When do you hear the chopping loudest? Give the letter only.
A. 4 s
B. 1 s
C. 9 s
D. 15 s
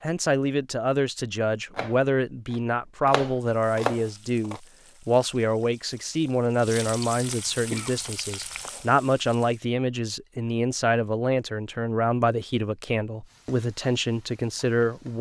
A.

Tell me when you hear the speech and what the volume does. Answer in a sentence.
The speech can be heard from 0.0 to 15.1 s, at a steady volume.